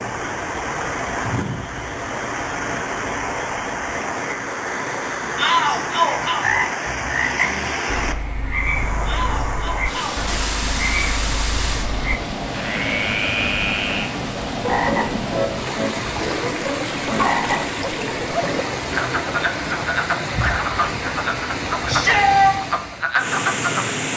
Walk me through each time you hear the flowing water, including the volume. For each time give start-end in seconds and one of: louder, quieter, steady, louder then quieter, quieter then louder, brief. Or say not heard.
0.0-24.1 steady.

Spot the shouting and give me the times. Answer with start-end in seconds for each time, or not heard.
5.3-6.4, 9.1-10.2, 21.9-22.6.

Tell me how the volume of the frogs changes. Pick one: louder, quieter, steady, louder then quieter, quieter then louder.
louder.